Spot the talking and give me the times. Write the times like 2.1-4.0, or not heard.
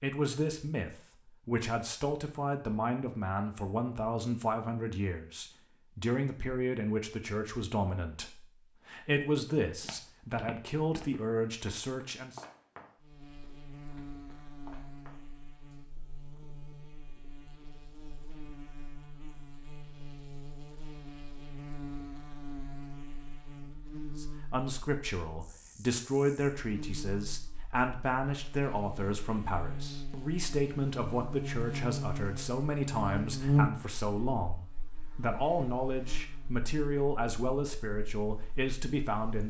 0.0-12.4, 24.1-39.4.